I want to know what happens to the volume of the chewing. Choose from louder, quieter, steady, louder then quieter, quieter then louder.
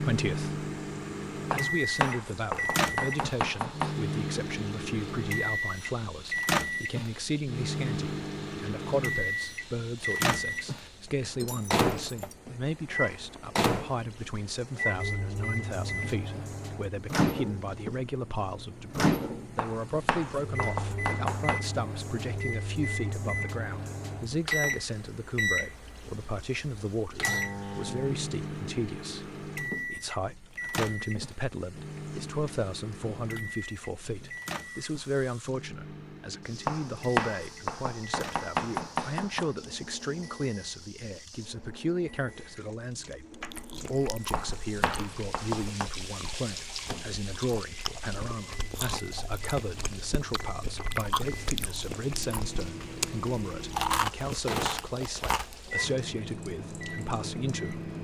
louder.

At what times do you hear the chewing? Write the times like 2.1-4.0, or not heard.
43.4-55.8.